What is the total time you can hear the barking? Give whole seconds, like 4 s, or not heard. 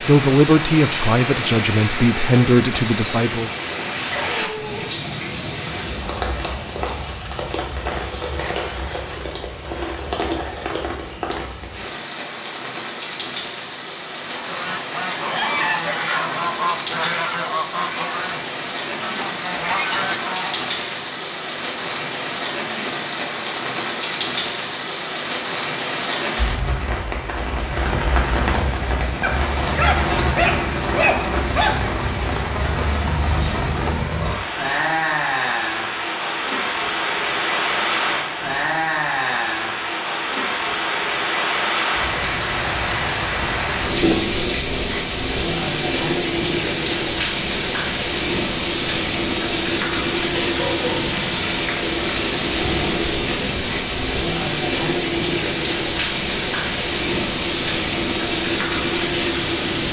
4 s.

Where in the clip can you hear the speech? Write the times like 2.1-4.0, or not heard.
0.0-3.5.